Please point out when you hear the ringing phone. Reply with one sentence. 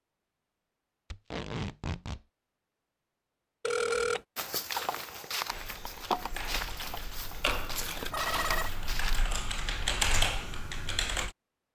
The ringing phone can be heard from 3.6 to 4.2 s and from 7.9 to 8.7 s.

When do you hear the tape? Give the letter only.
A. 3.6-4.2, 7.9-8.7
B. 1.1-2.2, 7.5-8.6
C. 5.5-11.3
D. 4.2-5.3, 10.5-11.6
B.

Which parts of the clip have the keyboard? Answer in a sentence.
You can hear the keyboard from 5.5 to 11.3 s.